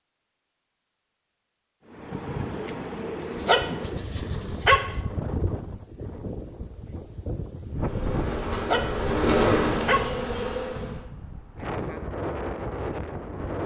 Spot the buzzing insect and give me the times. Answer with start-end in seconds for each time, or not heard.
7.8-11.1.